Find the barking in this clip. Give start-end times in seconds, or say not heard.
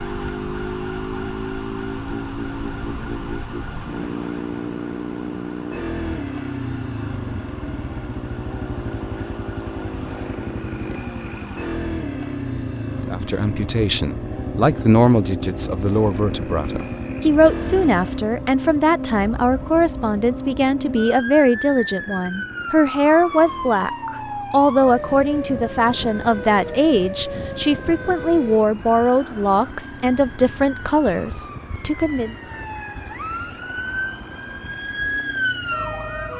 not heard.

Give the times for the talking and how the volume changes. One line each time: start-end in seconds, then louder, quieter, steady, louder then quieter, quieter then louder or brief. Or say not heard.
13.1-32.4 steady.